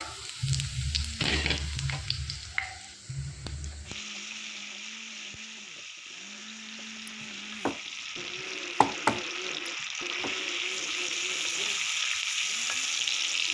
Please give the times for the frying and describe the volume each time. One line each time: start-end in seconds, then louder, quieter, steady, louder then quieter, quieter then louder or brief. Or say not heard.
0.0-13.5 quieter then louder.